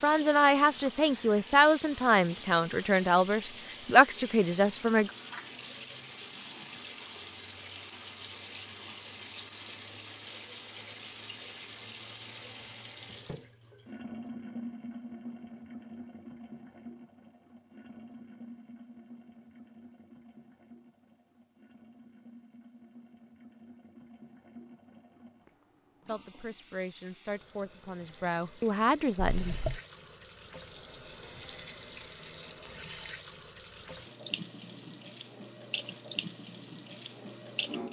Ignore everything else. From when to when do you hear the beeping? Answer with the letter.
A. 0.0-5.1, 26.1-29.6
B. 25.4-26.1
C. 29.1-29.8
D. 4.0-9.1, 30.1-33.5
C.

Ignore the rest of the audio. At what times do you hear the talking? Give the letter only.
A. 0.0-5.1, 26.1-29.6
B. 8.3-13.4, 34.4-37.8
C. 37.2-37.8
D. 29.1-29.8
A.